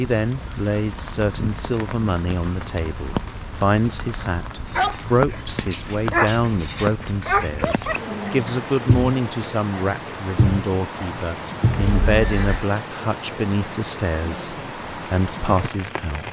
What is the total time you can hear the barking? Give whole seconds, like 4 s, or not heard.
7 s.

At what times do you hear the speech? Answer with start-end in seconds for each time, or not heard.
0.0-16.2.